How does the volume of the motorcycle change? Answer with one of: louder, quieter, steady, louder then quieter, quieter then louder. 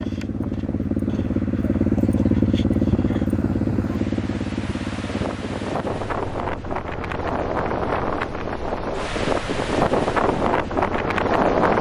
quieter.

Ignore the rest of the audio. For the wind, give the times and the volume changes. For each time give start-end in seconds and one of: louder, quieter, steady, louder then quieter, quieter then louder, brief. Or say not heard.
0.0-11.7 louder.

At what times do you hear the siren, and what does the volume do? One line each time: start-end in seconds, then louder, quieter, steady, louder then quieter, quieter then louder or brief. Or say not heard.
not heard.